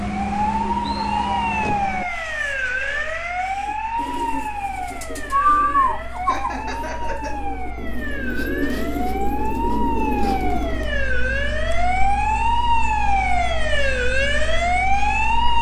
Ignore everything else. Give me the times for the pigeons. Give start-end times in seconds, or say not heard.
3.6-10.9.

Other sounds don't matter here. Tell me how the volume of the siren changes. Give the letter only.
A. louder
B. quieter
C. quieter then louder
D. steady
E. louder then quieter
C.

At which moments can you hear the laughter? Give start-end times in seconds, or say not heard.
6.2-7.3.